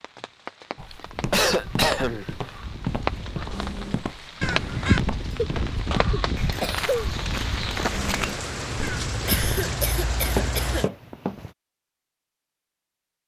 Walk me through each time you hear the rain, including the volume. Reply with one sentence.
You can hear the rain from 0.0 to 10.9 s, getting louder.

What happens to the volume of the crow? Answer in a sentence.
The loudness of the crow goes up, then down.